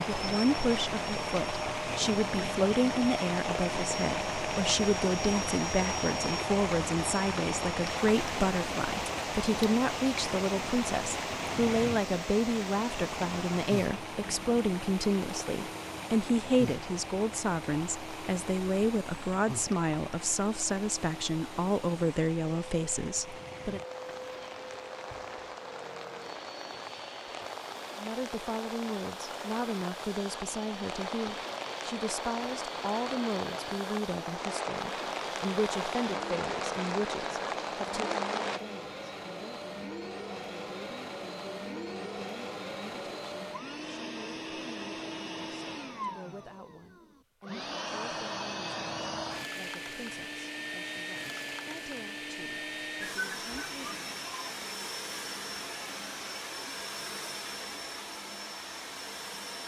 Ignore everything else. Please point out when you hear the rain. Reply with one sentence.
The rain can be heard from 0.0 to 38.6 s.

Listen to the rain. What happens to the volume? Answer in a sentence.
The volume of the rain goes down, then up.